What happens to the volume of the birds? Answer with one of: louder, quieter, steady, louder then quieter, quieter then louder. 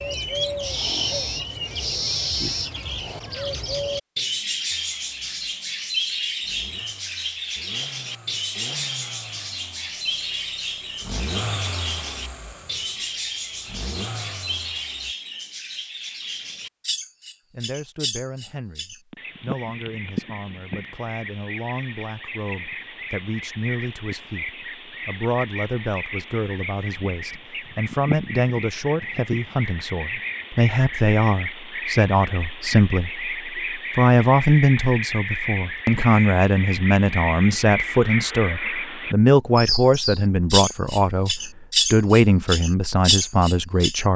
quieter then louder.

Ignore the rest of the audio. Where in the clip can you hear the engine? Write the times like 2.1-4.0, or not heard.
4.7-15.2.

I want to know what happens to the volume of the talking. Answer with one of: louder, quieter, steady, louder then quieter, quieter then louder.
louder.